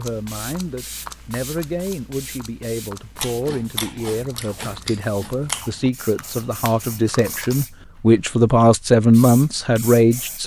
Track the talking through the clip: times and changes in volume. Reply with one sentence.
The talking can be heard from 0.0 to 10.4 s, getting louder.